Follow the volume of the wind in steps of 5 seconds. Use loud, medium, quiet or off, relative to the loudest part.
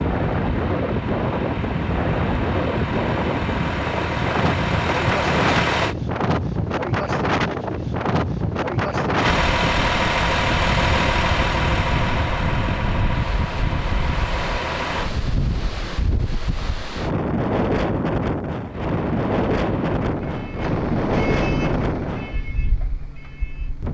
loud, loud, medium, loud, loud.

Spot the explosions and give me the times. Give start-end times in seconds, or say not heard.
not heard.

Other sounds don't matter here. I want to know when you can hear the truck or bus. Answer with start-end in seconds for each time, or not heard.
0.0-6.0, 9.2-15.1, 18.6-23.8.